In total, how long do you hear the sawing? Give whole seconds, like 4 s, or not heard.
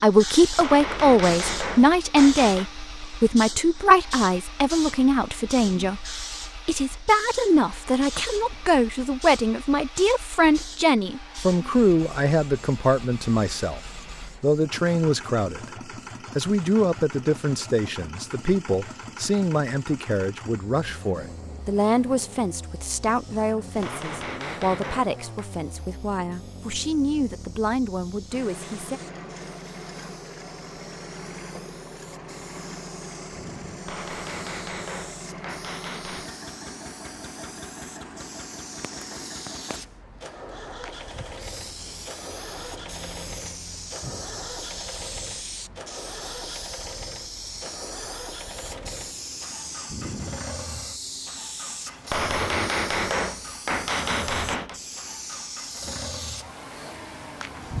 not heard.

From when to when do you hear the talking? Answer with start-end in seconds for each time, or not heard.
0.0-13.8, 14.4-15.7, 16.4-29.0.